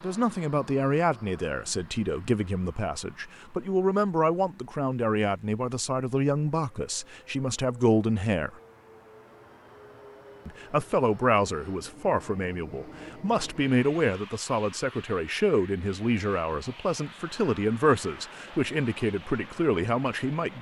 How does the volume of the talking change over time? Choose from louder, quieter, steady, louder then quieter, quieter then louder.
steady.